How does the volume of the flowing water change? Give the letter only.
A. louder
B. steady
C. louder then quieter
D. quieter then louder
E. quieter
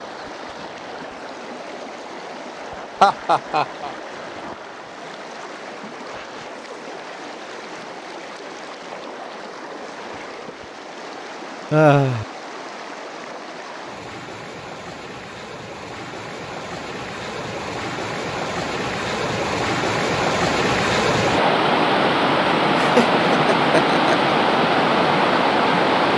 A.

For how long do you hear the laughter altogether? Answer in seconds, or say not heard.
3 s.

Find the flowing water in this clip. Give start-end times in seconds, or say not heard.
0.0-26.1.